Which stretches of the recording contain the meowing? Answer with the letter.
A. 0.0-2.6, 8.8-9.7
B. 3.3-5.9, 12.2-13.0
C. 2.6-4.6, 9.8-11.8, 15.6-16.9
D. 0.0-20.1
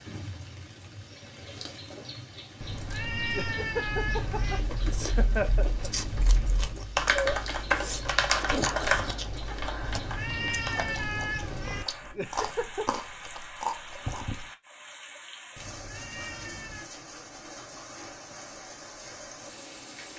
C.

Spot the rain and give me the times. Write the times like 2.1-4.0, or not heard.
0.0-20.1.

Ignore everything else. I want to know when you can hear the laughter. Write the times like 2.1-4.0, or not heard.
3.3-5.9, 12.2-13.0.